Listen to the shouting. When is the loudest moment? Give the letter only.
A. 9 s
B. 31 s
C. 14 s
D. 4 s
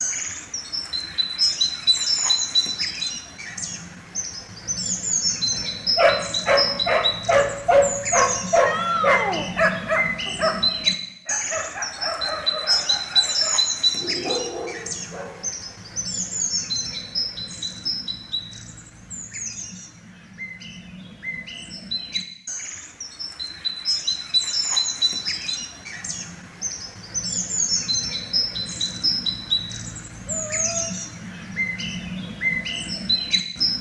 A.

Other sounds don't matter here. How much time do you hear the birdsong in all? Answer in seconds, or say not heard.
34 s.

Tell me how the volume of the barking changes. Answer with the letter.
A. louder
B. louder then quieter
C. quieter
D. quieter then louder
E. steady
C.